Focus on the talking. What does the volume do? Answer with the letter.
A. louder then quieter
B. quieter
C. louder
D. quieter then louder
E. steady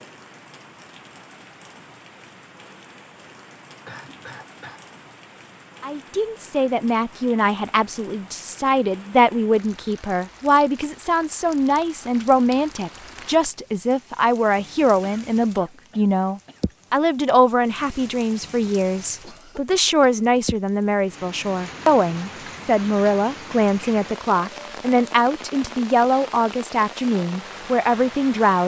E.